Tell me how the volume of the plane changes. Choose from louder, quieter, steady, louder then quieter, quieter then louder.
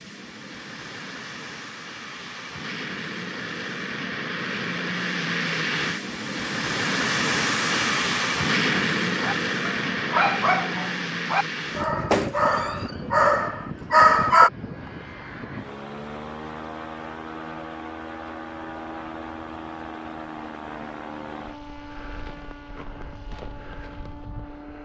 louder then quieter.